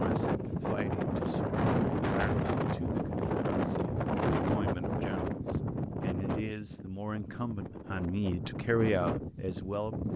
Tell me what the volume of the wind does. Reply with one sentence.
The loudness of the wind goes down.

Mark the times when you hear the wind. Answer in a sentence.
The wind can be heard from 0.0 to 10.1 s.